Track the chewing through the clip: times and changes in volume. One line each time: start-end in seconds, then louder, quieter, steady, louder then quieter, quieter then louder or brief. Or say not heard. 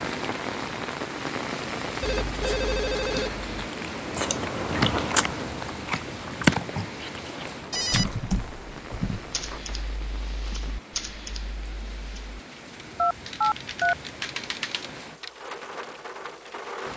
2.2-8.3 louder then quieter.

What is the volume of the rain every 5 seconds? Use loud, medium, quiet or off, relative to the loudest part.
loud, medium, medium, medium.